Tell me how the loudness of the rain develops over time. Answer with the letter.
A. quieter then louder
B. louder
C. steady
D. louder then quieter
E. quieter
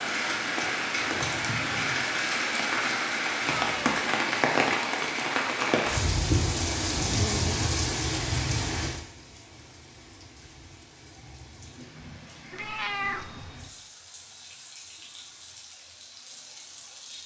E.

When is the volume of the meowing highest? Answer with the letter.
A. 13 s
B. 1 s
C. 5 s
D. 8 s
A.